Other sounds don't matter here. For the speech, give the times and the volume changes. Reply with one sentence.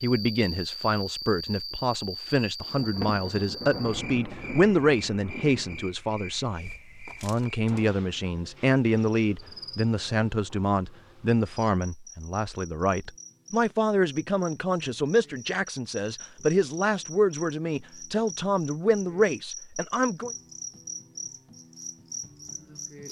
You can hear the speech from 0.0 to 20.3 s, at a steady volume.